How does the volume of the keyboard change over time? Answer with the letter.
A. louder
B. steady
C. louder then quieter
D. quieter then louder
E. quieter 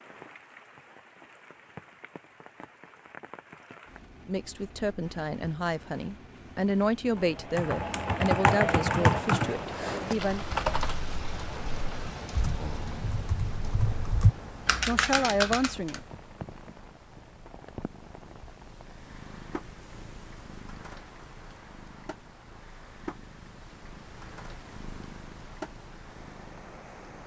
D.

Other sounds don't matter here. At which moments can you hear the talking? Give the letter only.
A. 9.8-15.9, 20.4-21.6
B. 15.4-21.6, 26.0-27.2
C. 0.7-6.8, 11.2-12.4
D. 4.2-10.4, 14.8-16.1
D.